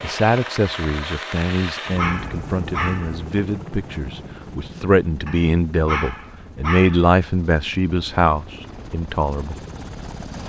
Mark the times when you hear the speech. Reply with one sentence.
You can hear the speech from 0.0 to 9.6 s.